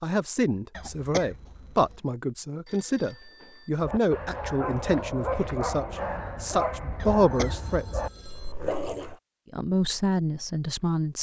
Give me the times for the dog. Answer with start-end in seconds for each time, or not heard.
3.8-9.2.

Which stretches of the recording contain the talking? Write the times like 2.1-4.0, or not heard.
0.0-8.0, 9.5-11.1.